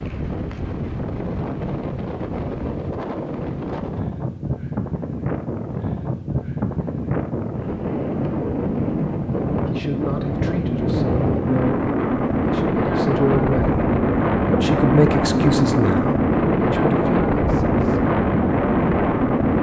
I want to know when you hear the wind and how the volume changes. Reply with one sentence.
You can hear the wind from 0.0 to 19.5 s, getting louder.